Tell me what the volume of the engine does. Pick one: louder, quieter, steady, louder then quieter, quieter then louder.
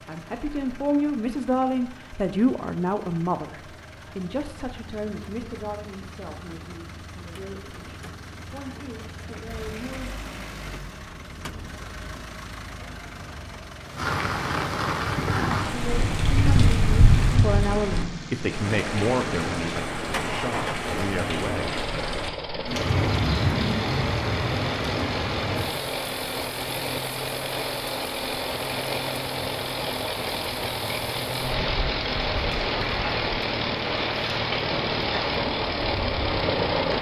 louder.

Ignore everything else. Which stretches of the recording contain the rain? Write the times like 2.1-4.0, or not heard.
13.9-36.9.